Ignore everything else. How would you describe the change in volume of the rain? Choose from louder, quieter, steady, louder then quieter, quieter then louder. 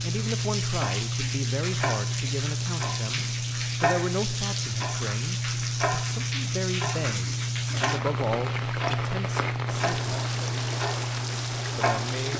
steady.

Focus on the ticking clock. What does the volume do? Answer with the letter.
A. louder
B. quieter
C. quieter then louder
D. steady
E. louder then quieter
D.